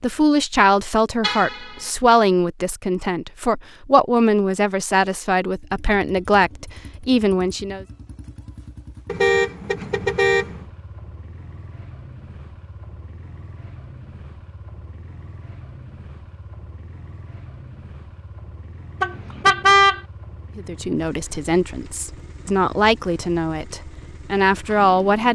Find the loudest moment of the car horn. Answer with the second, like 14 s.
20 s.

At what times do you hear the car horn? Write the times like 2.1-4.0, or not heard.
1.2-1.7, 9.1-10.6, 19.0-20.0.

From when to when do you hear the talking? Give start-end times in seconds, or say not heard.
0.0-7.8, 20.6-25.3.